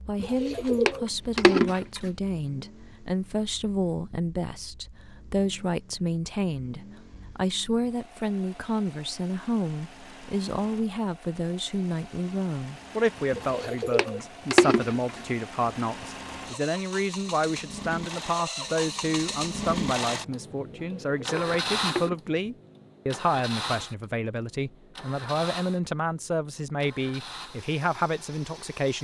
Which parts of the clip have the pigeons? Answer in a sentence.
You can hear the pigeons from 0.1 to 2.1 s, from 13.3 to 15.0 s and from 20.7 to 22.2 s.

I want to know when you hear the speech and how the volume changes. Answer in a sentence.
You can hear the speech from 0.1 to 28.9 s, at a steady volume.